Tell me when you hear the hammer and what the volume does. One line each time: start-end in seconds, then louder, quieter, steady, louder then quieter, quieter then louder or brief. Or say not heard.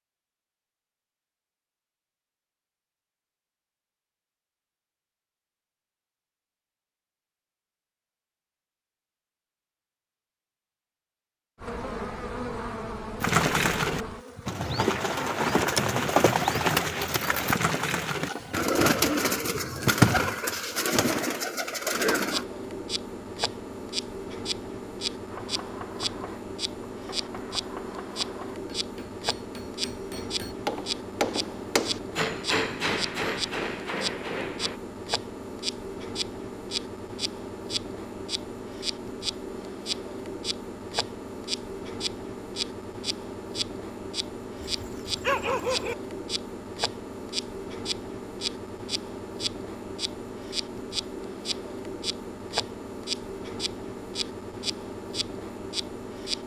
25.2-34.8 louder.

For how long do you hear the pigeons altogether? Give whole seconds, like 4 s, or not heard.
9 s.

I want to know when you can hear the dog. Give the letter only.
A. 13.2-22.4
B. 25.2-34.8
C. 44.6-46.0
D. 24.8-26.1
C.